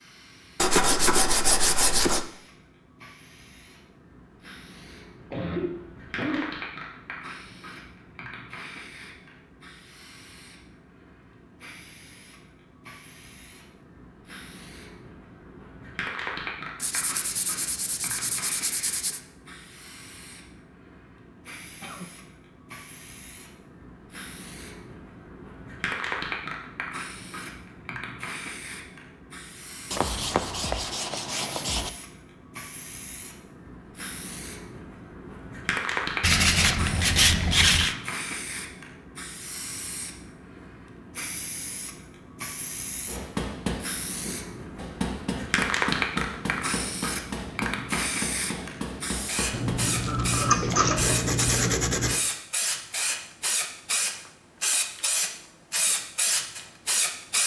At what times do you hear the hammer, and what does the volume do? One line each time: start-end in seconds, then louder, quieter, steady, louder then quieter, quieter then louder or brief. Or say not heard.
43.0-49.8 steady.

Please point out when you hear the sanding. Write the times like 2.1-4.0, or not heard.
0.6-2.2, 16.8-19.2, 29.9-31.9, 36.2-38.0, 49.5-52.2.